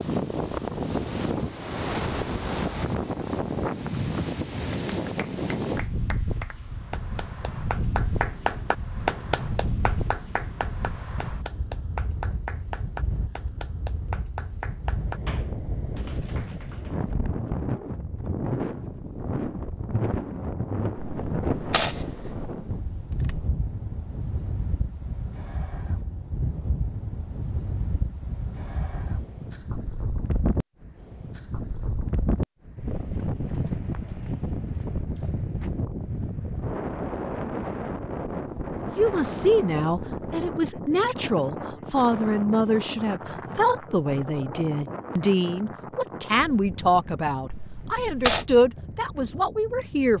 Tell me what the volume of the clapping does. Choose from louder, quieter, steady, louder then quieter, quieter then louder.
louder then quieter.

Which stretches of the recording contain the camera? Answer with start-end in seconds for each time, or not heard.
20.9-23.4, 47.5-48.5.